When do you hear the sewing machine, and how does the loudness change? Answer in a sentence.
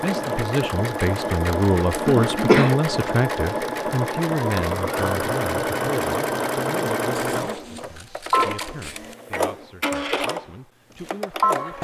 The sewing machine can be heard from 0.0 to 11.8 s, at a steady volume.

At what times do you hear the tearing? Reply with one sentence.
The tearing can't be heard in this clip.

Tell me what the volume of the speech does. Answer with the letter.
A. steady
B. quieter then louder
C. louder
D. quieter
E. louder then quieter
D.